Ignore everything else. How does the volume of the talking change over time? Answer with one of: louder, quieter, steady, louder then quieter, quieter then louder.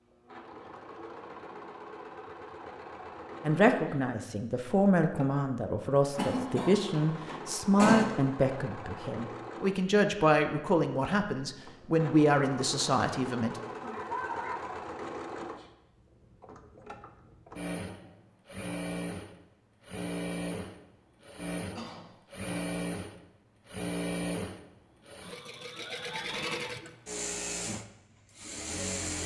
steady.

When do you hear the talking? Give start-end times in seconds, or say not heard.
3.4-13.6.